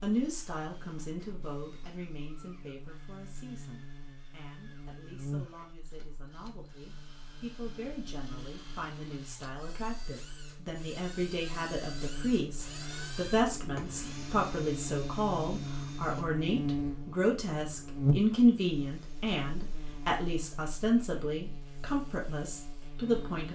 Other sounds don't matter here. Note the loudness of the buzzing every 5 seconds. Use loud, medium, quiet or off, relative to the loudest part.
quiet, medium, medium, loud, quiet.